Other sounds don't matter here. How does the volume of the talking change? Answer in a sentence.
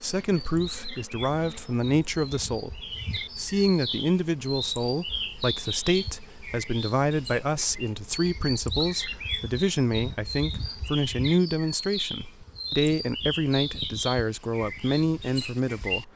The loudness of the talking stays about the same.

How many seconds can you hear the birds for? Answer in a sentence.
You can hear the birds for 16 seconds altogether.